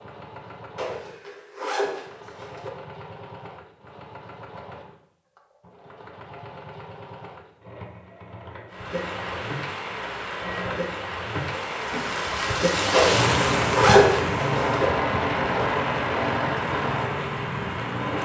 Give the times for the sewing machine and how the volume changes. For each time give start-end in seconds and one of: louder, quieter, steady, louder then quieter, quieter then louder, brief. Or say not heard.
0.0-18.2 louder.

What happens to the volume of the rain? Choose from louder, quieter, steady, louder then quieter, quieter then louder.
louder then quieter.